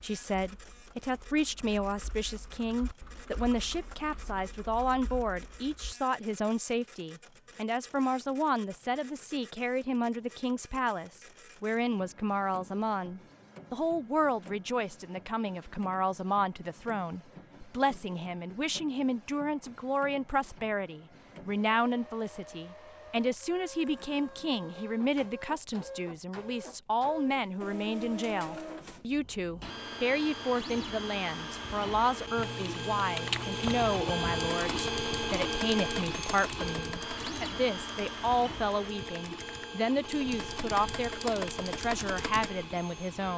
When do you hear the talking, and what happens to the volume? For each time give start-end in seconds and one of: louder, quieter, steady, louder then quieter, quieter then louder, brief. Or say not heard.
0.0-43.3 steady.